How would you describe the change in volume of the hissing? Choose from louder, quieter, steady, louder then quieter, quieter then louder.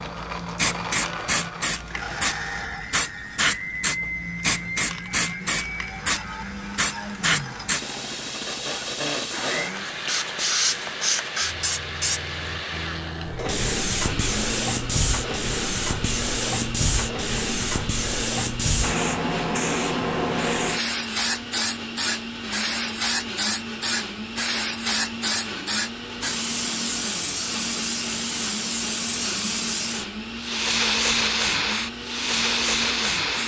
steady.